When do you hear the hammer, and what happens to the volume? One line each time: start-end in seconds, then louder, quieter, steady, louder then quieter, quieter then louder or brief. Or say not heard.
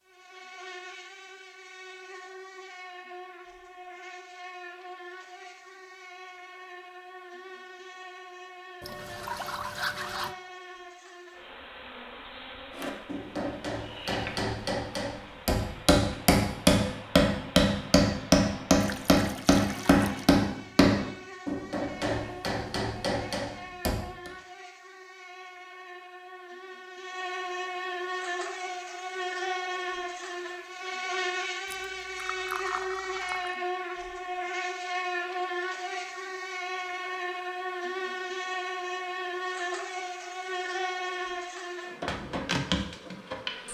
12.8-24.0 louder then quieter.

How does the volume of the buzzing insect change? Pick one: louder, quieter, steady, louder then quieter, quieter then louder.
louder.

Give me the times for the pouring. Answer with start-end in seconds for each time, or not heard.
8.8-10.3, 18.8-20.2, 31.6-33.5.